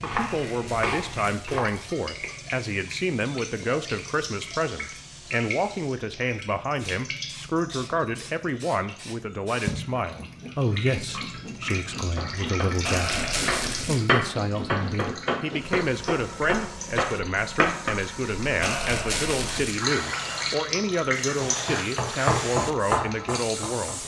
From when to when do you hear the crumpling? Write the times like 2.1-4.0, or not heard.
0.3-1.9, 12.8-14.0, 18.6-19.8.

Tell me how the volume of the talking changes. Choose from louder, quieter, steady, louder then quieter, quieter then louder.
steady.